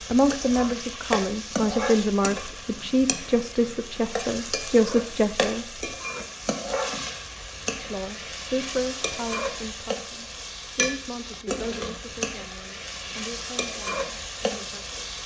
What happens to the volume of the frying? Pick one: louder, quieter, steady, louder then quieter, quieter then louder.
steady.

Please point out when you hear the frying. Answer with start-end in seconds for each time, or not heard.
0.0-15.2.